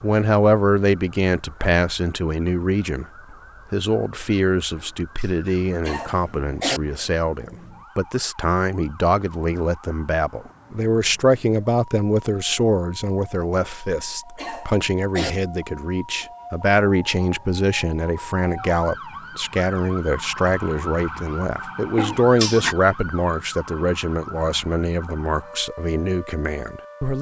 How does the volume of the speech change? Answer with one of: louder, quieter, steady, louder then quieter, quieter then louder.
steady.